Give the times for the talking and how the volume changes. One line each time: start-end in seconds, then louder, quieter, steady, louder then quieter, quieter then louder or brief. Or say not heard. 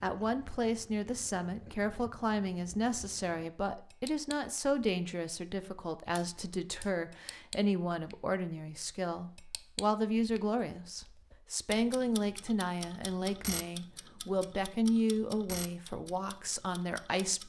0.0-17.4 steady.